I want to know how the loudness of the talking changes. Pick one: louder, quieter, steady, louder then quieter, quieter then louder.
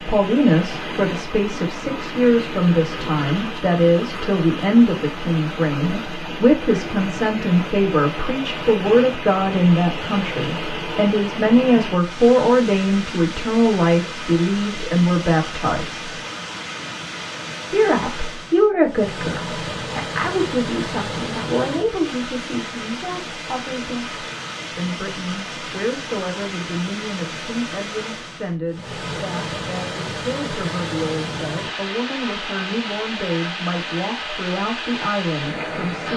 quieter.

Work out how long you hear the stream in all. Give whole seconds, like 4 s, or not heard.
36 s.